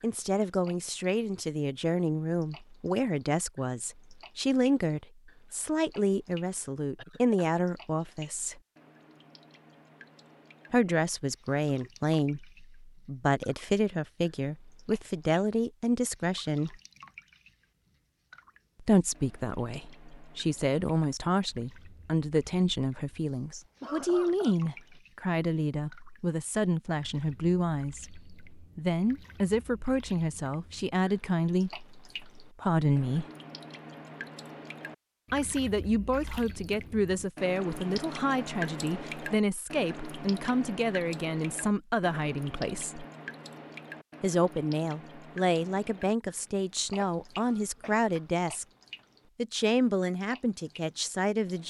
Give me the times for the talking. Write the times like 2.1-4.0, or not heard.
0.0-8.6, 10.7-16.8, 18.8-33.2, 35.3-43.0, 44.2-48.6, 49.4-51.6.